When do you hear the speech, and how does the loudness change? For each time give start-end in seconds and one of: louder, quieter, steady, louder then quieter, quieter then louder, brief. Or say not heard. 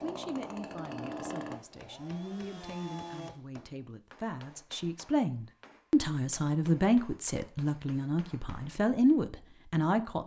0.0-10.2 louder.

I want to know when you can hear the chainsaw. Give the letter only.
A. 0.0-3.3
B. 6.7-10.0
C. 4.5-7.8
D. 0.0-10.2
A.